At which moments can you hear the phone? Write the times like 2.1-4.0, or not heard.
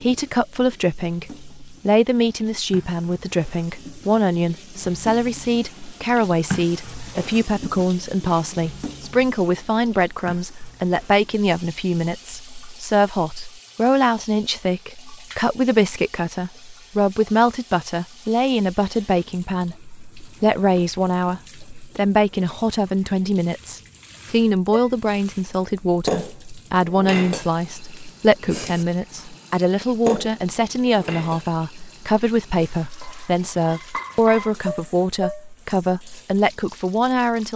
not heard.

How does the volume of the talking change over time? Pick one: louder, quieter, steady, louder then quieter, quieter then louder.
steady.